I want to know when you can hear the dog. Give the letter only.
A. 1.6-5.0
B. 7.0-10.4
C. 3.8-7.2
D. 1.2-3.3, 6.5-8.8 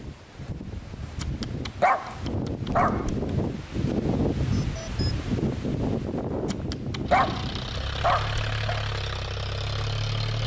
D.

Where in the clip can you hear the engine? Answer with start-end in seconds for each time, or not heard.
7.0-10.4.